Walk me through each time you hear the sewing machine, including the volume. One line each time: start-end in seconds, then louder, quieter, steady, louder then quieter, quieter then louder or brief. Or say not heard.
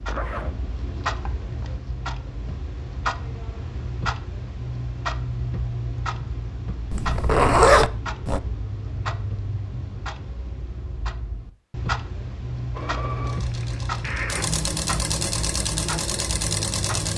12.7-17.1 louder.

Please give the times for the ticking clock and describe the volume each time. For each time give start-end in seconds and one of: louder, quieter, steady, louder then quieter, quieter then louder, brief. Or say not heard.
0.0-17.1 steady.